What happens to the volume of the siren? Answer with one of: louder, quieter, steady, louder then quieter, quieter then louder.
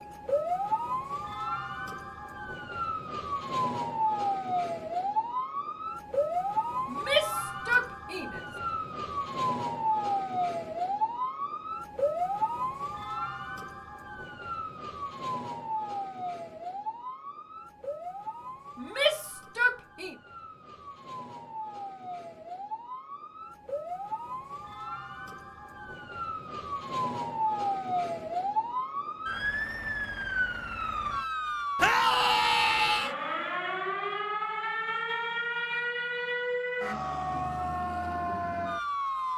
quieter then louder.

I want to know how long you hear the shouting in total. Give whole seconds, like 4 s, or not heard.
4 s.